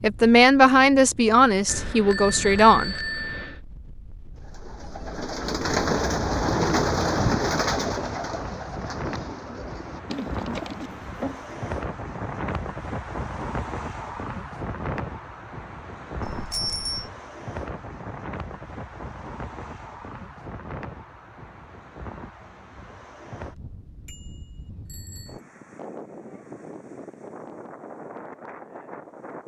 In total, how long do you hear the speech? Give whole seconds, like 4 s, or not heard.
3 s.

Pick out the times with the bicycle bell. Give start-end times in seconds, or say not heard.
1.6-3.6, 16.2-17.1, 24.1-25.4.